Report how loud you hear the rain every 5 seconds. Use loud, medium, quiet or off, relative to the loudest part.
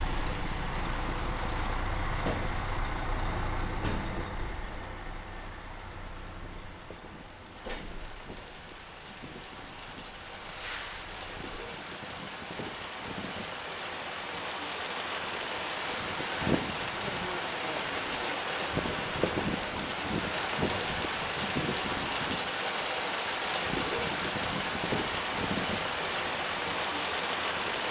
quiet, quiet, medium, loud, loud, loud.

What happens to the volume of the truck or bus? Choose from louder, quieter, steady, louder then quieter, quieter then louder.
quieter.